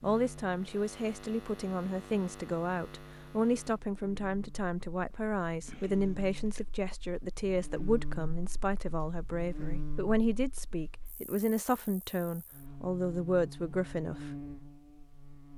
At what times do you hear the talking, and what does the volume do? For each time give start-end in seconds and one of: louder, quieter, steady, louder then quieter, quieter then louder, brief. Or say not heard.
0.0-14.3 steady.